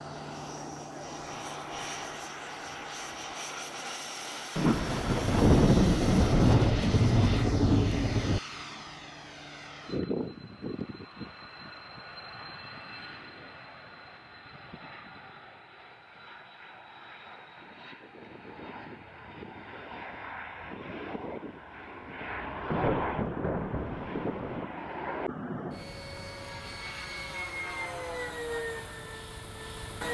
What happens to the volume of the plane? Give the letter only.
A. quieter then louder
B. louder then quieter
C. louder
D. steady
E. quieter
A.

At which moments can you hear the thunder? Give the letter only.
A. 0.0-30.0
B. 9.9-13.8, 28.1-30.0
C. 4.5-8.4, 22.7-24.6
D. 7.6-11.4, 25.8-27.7
C.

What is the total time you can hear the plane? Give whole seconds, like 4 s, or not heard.
30 s.